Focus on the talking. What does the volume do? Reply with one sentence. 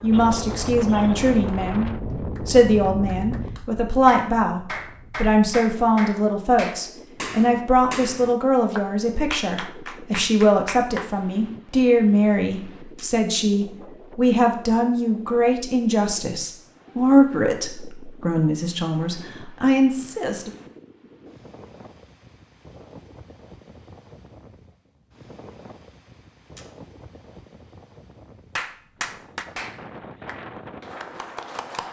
The loudness of the talking stays about the same.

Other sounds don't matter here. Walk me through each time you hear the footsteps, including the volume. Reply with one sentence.
You can't hear the footsteps here.